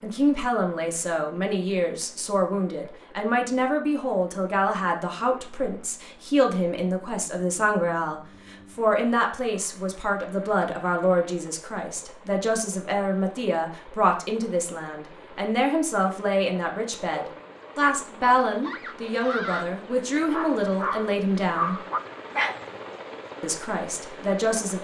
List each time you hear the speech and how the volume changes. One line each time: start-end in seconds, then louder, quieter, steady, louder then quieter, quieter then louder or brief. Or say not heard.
0.0-21.8 steady
23.4-24.8 brief.